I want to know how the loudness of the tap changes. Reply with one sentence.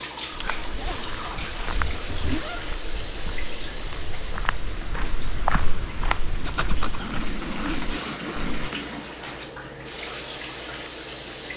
The loudness of the tap goes down, then up.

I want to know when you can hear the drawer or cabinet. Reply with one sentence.
You can't hear the drawer or cabinet here.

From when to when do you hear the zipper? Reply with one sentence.
The zipper can be heard from 0.8 to 2.6 s and from 6.4 to 8.8 s.